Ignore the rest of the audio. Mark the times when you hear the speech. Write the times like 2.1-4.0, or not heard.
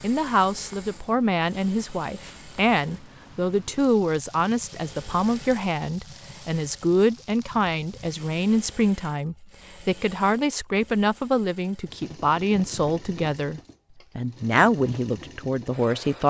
0.0-16.2.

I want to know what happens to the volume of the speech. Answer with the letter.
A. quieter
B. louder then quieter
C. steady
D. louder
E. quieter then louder
C.